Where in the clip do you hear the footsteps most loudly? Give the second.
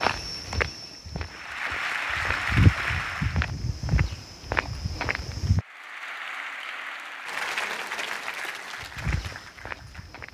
3 s.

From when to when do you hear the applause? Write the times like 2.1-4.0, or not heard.
1.2-3.5, 5.5-10.3.